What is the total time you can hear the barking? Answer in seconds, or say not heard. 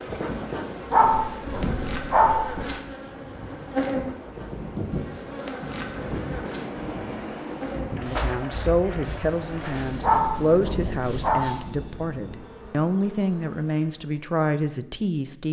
3 s.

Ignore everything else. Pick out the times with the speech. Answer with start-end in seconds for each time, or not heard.
8.0-15.4.